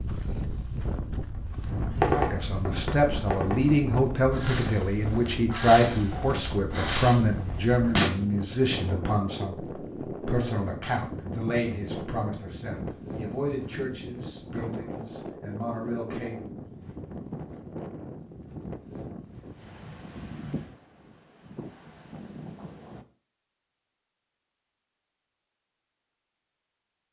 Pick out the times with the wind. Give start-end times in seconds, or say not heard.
0.0-23.1.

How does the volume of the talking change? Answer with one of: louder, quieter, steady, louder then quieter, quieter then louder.
quieter.